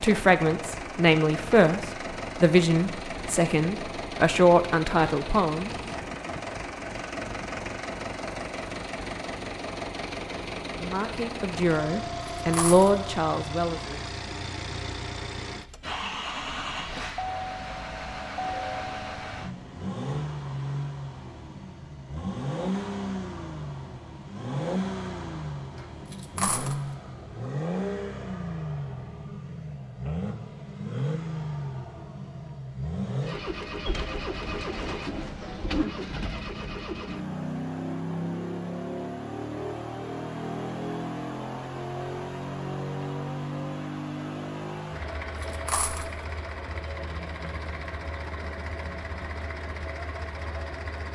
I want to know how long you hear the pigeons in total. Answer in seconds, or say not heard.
2 s.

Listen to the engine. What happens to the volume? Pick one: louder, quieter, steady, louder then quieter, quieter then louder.
steady.